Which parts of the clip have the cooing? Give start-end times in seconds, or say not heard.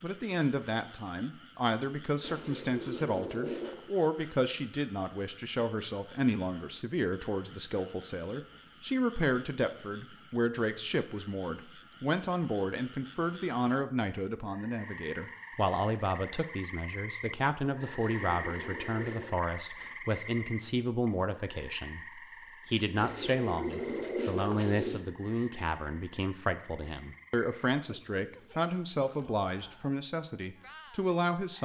2.2-3.9, 17.8-19.4, 22.9-25.1.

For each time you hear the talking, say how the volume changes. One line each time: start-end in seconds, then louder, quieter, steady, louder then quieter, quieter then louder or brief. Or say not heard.
0.0-31.5 steady.